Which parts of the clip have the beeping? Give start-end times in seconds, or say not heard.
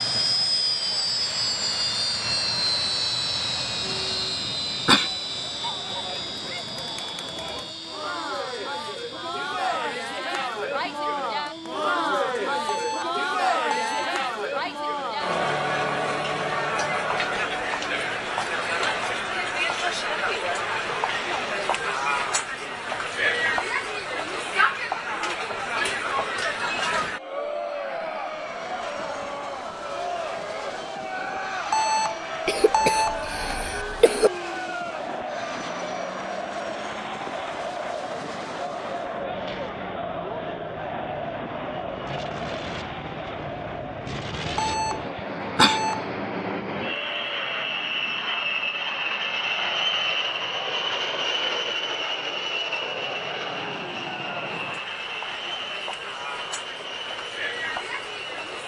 12.7-14.2, 31.7-33.2, 44.5-46.0.